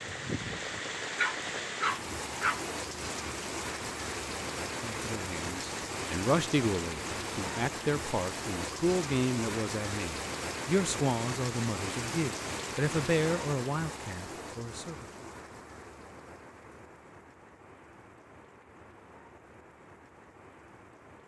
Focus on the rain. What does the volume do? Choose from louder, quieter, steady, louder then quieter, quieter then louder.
quieter.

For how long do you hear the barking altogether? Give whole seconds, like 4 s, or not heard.
2 s.